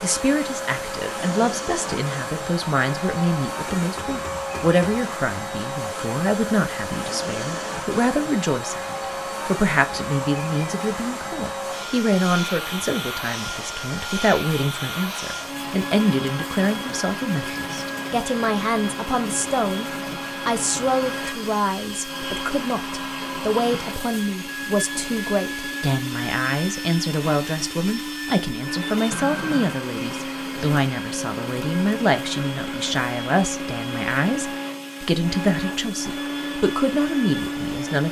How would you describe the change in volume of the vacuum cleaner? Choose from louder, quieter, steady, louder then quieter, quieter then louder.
steady.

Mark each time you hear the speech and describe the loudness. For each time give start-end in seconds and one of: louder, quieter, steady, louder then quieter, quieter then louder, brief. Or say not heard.
0.0-38.0 steady.